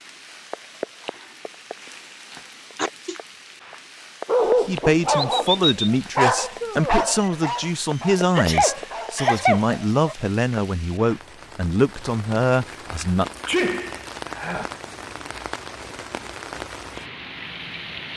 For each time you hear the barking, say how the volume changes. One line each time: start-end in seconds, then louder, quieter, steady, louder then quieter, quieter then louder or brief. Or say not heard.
4.2-10.2 quieter.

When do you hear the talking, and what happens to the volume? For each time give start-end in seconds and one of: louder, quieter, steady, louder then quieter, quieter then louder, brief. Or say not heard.
4.6-13.3 steady.